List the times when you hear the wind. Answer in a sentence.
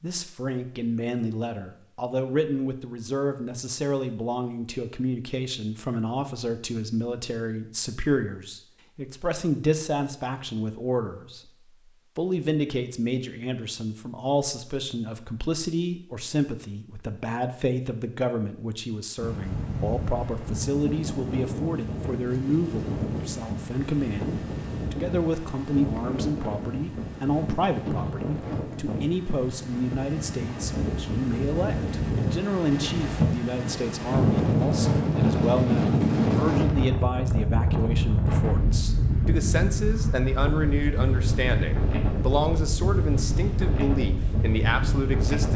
The wind can be heard from 19.1 to 45.5 s.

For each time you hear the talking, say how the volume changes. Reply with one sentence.
The talking can be heard from 0.0 to 11.5 s, at a steady volume; and from 12.2 to 45.5 s, at a steady volume.